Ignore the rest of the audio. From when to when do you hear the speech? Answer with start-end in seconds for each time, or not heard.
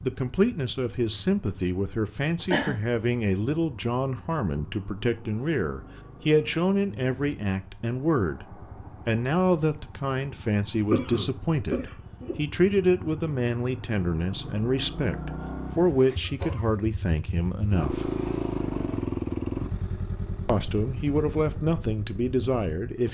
0.0-18.1, 20.4-23.1.